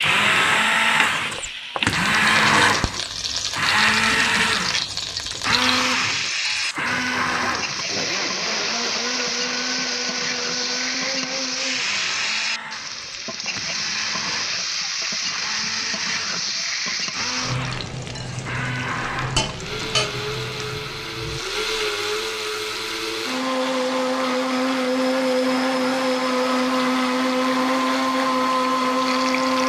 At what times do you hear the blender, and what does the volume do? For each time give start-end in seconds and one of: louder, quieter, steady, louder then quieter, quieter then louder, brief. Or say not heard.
0.0-29.6 quieter then louder.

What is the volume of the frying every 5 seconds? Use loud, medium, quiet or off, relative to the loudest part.
loud, loud, loud, loud, medium, medium.